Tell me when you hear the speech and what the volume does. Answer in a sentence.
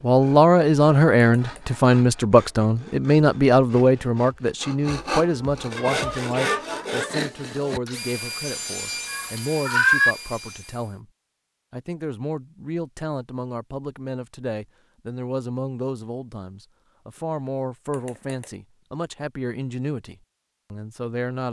You can hear the speech from 0.0 to 11.1 s, getting quieter; and from 11.7 to 21.4 s, at a steady volume.